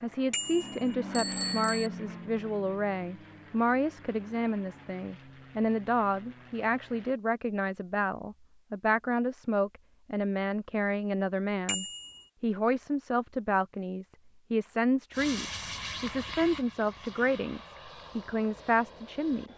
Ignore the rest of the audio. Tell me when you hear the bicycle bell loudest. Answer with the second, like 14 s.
1 s.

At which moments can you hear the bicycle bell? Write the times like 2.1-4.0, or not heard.
0.3-1.9, 11.7-12.2.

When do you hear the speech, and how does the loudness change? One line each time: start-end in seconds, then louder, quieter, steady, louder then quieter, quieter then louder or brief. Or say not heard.
0.0-19.5 steady.